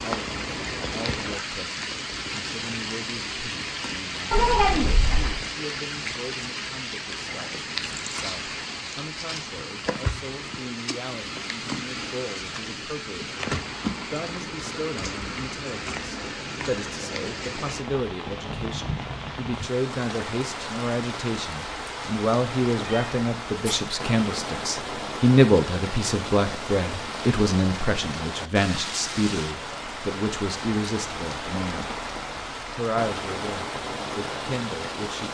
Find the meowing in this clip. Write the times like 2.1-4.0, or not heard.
4.3-5.5, 22.9-23.8.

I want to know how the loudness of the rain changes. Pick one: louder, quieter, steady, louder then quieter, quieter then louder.
steady.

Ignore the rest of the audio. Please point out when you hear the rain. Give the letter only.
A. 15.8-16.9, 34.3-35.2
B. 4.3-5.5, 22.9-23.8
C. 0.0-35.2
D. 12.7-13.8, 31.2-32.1
C.